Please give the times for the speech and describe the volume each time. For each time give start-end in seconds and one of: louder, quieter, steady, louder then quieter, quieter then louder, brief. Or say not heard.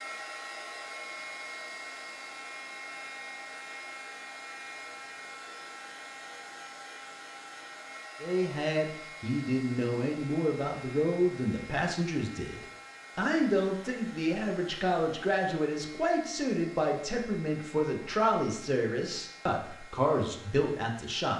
8.2-21.3 steady.